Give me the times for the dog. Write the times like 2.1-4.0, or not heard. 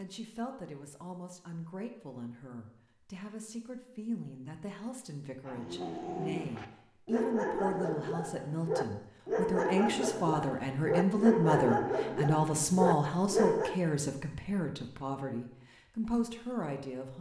5.5-13.8.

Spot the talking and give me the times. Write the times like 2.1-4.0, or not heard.
0.0-17.1.